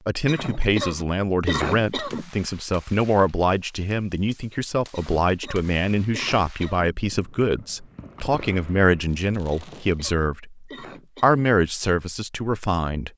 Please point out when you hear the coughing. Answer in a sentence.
The coughing can be heard from 0.2 to 2.3 s, from 4.9 to 6.9 s and from 9.5 to 11.4 s.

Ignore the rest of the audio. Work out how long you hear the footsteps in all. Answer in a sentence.
You can't hear the footsteps here.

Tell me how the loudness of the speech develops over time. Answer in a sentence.
The volume of the speech stays about the same.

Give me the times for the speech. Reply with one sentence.
You can hear the speech from 0.1 to 13.1 s.